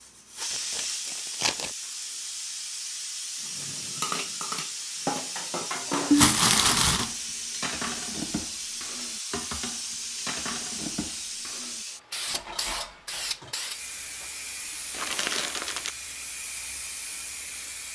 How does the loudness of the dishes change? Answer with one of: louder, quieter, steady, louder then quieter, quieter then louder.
quieter.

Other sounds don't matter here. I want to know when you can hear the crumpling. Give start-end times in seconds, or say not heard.
0.5-1.7, 6.1-7.1, 14.9-15.9.